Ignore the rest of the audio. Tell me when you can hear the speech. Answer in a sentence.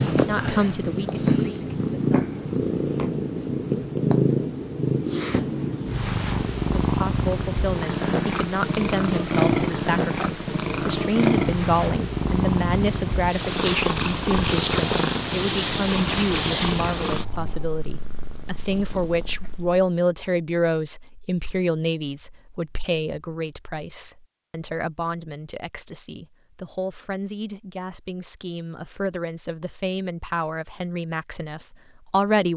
You can hear the speech from 0.1 to 2.2 s and from 6.8 to 32.5 s.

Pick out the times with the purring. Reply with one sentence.
The purring can be heard from 0.0 to 19.9 s.